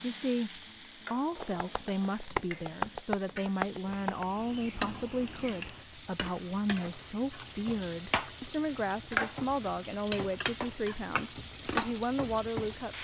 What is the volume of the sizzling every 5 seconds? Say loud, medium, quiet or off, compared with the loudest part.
medium, loud, loud.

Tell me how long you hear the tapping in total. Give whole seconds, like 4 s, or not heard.
3 s.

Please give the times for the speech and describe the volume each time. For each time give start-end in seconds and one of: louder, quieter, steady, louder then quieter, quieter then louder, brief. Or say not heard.
0.0-12.9 steady.